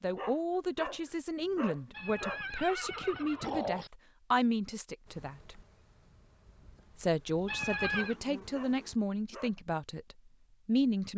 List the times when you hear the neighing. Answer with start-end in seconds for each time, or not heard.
1.9-3.9, 7.5-8.2.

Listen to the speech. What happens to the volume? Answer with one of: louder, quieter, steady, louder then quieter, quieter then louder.
steady.